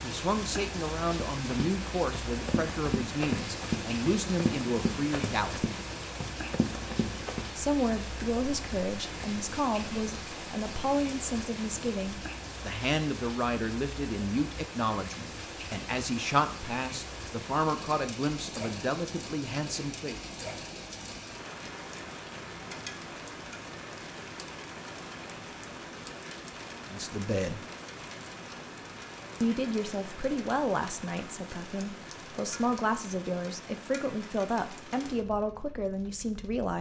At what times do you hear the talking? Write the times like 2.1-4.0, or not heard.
0.0-5.7, 7.5-20.2, 26.9-27.6, 29.4-36.7.